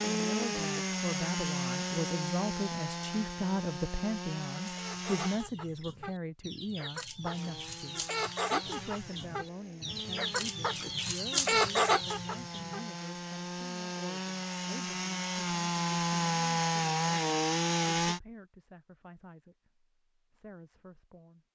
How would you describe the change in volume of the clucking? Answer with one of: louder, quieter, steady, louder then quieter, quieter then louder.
louder.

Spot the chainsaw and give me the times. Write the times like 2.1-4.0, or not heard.
0.0-5.4, 7.2-18.2.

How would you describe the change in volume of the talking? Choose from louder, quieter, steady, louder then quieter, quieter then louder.
quieter.